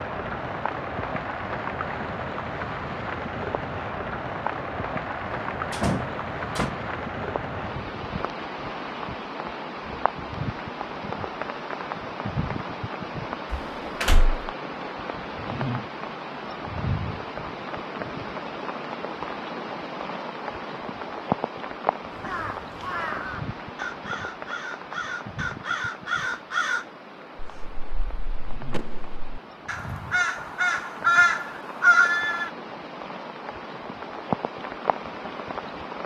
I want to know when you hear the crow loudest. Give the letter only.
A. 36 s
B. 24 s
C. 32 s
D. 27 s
C.